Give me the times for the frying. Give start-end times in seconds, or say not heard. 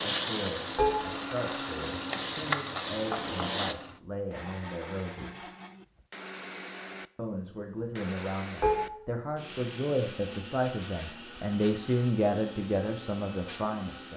0.0-3.8.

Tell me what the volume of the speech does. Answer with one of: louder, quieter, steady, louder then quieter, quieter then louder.
louder.